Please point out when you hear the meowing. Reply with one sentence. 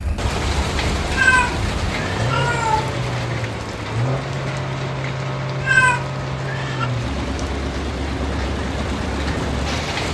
The meowing can be heard from 1.1 to 3.0 s and from 5.6 to 6.9 s.